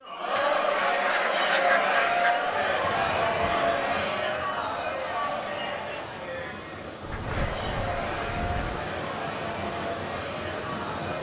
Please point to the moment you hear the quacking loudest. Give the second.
2 s.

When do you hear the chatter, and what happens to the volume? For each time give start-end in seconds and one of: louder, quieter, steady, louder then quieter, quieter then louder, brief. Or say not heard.
0.0-11.1 quieter.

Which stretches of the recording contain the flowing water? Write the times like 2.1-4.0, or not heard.
2.4-11.1.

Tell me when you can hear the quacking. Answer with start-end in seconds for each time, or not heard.
0.3-2.4, 7.0-8.8.